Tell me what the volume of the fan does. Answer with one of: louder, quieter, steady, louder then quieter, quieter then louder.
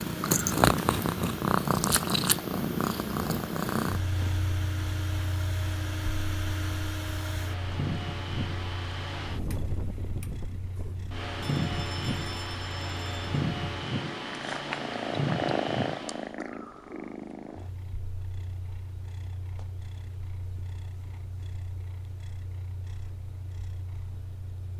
louder.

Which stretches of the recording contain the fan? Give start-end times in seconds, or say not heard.
0.0-16.4.